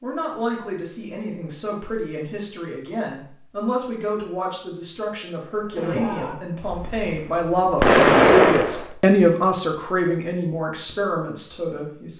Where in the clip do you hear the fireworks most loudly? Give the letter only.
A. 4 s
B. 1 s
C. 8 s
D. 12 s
C.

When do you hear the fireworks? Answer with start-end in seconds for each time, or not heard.
5.5-8.9.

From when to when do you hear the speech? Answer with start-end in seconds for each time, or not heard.
0.0-12.1.